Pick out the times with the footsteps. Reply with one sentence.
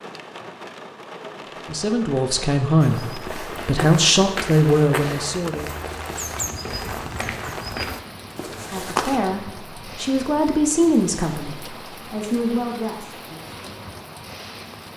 The footsteps can be heard from 2.8 to 9.2 s.